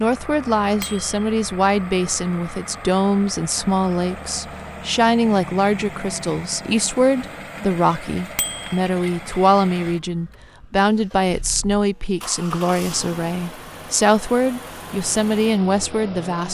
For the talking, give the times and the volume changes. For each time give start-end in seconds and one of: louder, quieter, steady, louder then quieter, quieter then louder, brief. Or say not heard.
0.0-16.4 steady.